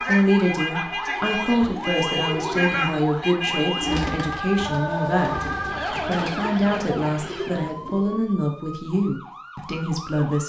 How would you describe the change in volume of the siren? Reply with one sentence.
The volume of the siren goes down.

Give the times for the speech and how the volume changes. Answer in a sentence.
The speech can be heard from 0.0 to 10.4 s, at a steady volume.